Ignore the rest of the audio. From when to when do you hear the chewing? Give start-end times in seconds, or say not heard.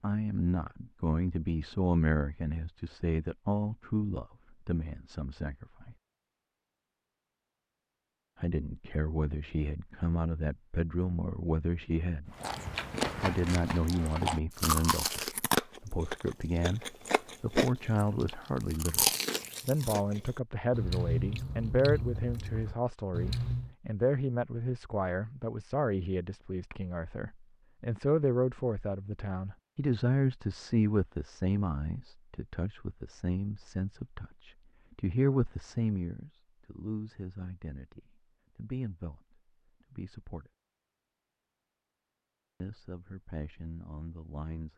12.3-23.7.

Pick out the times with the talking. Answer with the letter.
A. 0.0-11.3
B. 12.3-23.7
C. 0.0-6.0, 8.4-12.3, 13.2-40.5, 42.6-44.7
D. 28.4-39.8
C.